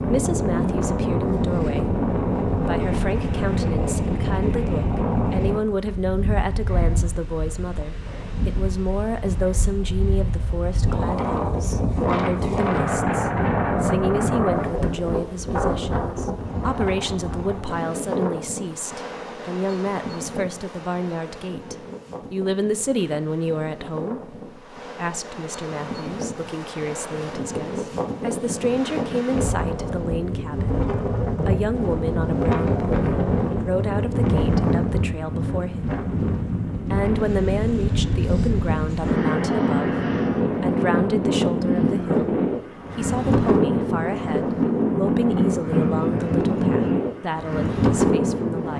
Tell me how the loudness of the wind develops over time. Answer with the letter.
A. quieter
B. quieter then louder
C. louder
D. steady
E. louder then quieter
B.